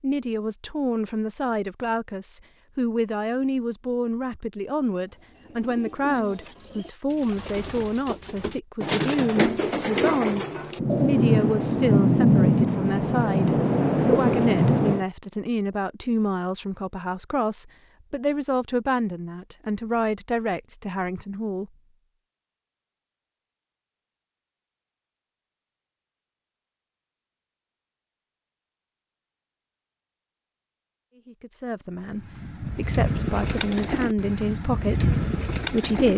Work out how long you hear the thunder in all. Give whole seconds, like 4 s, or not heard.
4 s.